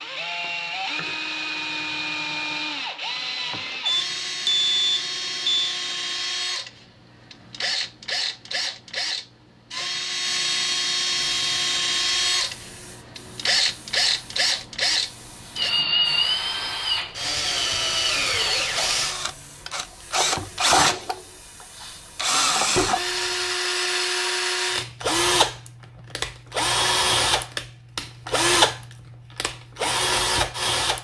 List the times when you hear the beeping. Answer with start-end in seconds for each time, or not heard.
3.9-5.8.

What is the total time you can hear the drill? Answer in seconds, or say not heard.
31 s.